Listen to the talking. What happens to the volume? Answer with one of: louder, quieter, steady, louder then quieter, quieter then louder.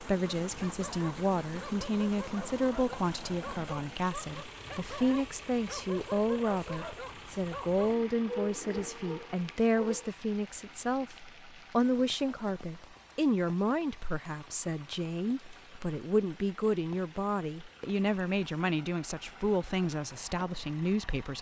steady.